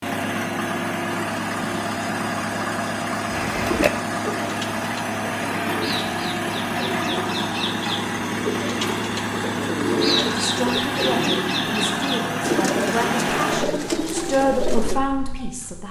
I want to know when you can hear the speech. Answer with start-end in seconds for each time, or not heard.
10.2-15.8.